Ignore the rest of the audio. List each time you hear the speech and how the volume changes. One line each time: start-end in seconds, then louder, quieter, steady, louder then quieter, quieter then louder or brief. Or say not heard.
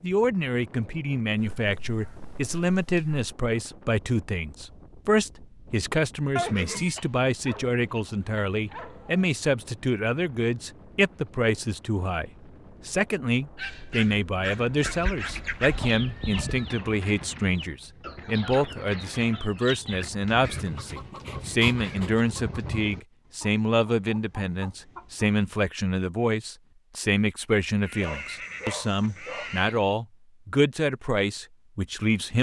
0.0-32.3 steady.